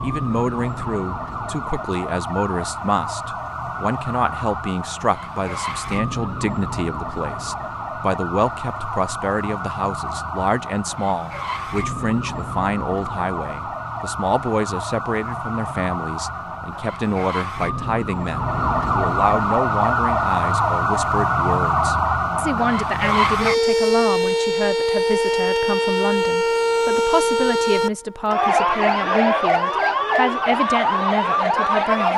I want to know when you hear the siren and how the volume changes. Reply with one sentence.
You can hear the siren from 0.0 to 32.1 s, getting louder.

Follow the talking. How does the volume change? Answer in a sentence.
The volume of the talking stays about the same.